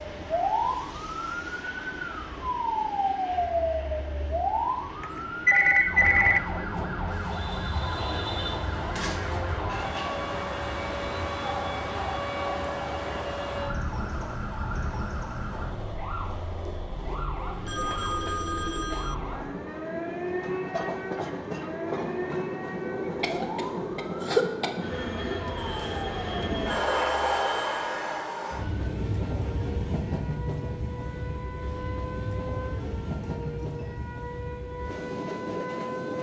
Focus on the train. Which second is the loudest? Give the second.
27 s.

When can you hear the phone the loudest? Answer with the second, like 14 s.
6 s.